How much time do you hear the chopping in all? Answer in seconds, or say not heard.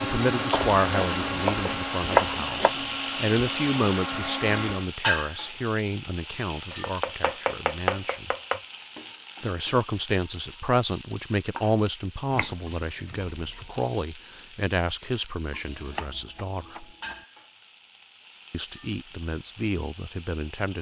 7 s.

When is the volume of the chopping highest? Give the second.
2 s.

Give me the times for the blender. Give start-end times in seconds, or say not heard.
0.0-4.9.